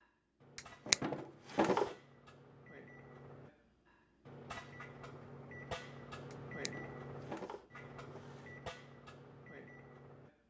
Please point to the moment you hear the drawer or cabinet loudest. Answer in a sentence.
The volume of the drawer or cabinet peaks at 1 second.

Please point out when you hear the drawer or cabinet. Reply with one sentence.
You can hear the drawer or cabinet from 0.6 to 1.9 s and from 6.3 to 8.5 s.